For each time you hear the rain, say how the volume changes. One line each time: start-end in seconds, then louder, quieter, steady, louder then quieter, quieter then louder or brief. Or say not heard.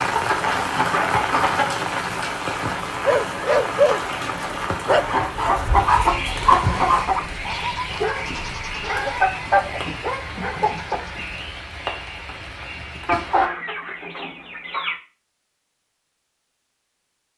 0.0-13.5 quieter.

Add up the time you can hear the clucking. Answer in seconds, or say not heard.
8 s.